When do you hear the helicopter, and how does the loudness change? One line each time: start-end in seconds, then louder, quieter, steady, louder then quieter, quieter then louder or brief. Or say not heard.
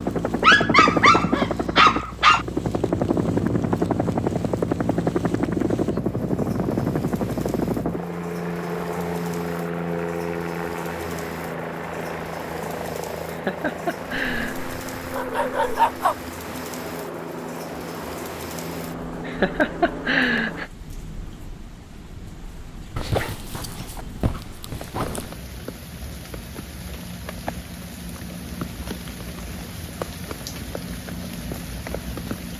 0.0-20.7 quieter.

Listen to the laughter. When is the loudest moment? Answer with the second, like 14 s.
20 s.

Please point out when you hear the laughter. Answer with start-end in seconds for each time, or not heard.
13.2-14.6, 19.2-20.6.